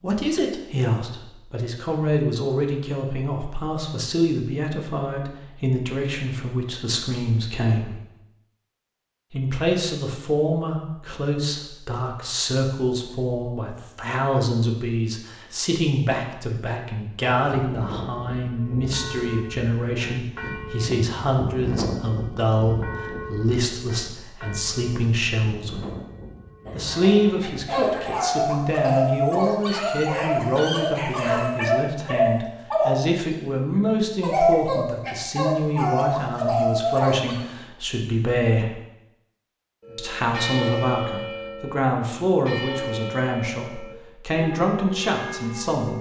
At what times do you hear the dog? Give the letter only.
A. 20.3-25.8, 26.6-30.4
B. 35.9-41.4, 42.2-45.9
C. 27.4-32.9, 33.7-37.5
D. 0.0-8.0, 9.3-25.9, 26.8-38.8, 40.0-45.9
C.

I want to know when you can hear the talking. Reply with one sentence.
The talking can be heard from 0.0 to 8.0 s, from 9.3 to 25.9 s, from 26.8 to 38.8 s and from 40.0 to 45.9 s.